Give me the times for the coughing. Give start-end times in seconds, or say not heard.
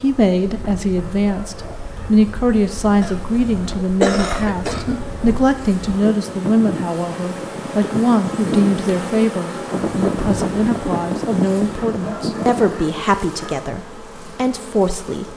3.0-5.0.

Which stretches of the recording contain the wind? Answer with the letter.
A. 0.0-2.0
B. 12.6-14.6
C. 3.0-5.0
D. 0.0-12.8
D.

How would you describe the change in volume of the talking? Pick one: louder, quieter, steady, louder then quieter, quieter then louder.
steady.